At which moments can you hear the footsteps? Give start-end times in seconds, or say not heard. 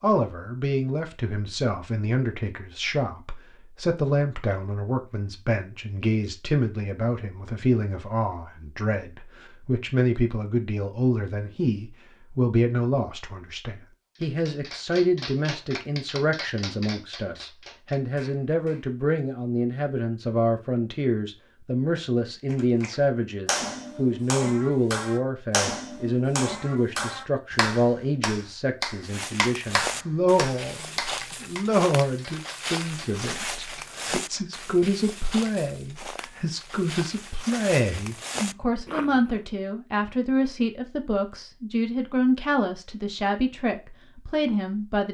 29.0-39.4.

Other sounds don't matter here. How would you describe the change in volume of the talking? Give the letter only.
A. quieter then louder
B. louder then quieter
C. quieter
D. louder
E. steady
E.